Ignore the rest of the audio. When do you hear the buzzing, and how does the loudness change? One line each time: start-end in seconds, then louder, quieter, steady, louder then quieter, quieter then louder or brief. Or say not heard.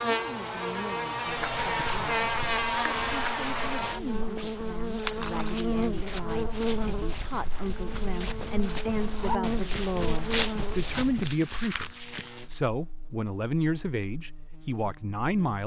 0.0-15.6 quieter.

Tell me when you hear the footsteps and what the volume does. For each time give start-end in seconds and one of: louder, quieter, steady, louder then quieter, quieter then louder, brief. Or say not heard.
1.4-11.3 louder.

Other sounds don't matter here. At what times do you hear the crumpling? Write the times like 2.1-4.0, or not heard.
5.0-5.5, 9.8-12.3.